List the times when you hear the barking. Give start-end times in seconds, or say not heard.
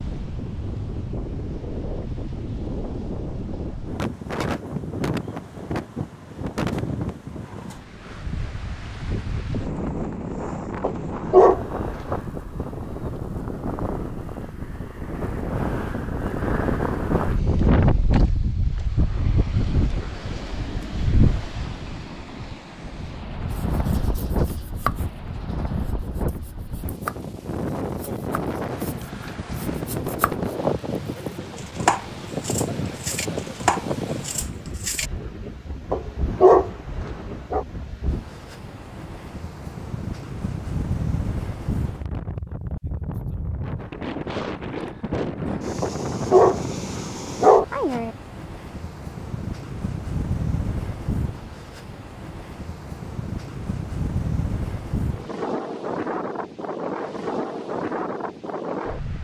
10.8-12.2, 35.9-37.6, 45.8-48.1.